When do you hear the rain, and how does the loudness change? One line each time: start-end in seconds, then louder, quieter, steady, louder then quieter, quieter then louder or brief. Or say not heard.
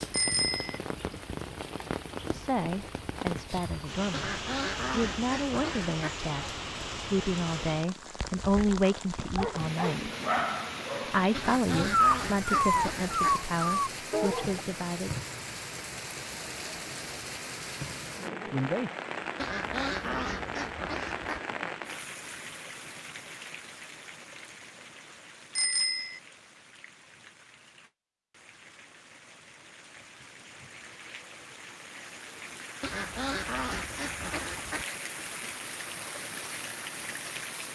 0.0-37.7 quieter then louder.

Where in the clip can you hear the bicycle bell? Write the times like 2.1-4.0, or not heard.
0.1-0.8, 25.6-26.2.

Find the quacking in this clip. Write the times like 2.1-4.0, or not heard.
4.1-6.2, 11.3-13.3, 19.4-21.4, 32.8-34.9.